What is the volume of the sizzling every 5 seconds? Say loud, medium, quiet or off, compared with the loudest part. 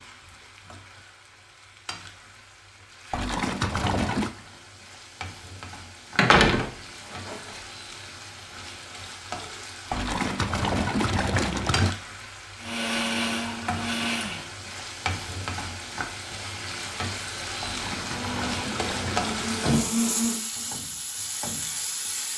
quiet, medium, medium, loud, loud.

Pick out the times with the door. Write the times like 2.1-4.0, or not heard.
6.2-6.7, 18.8-19.9.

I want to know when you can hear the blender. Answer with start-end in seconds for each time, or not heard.
12.6-14.4, 18.0-20.4.